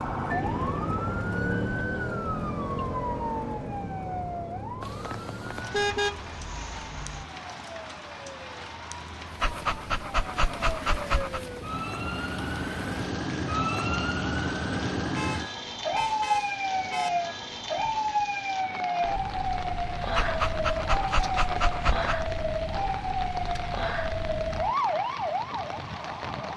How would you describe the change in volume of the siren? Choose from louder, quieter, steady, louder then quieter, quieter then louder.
quieter then louder.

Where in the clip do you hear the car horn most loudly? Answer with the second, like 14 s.
6 s.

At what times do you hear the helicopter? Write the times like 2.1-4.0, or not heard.
0.0-1.9.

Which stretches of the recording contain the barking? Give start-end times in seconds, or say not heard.
9.4-11.4, 20.1-22.2.